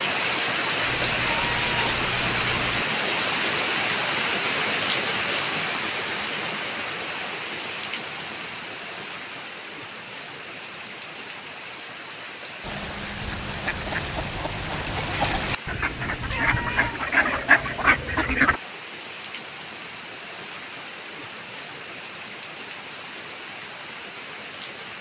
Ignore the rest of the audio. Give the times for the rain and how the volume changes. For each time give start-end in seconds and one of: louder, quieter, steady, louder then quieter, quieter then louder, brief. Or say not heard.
0.0-24.9 quieter.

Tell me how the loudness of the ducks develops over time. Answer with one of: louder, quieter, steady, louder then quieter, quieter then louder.
louder.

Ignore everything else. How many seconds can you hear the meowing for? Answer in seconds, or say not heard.
3 s.